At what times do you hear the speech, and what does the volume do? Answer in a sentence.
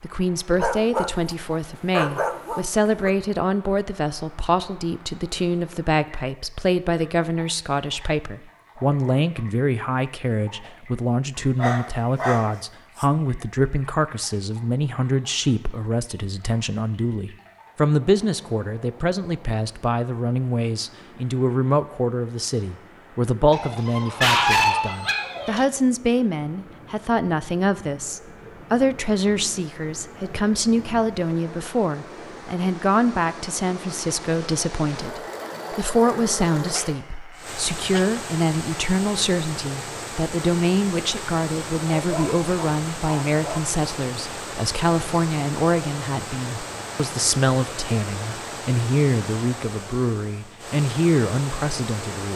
The speech can be heard from 0.0 to 52.3 s, at a steady volume.